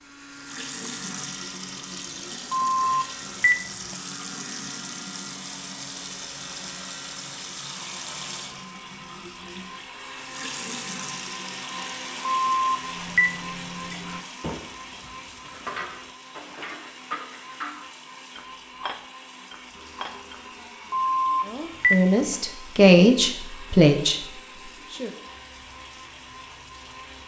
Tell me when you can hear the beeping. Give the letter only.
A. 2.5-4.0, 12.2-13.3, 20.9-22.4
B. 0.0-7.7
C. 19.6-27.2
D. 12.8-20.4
A.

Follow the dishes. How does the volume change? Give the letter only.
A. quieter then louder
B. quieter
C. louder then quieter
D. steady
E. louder
D.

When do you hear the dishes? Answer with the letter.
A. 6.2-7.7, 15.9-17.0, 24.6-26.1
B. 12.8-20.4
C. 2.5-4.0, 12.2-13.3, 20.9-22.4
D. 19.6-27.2
B.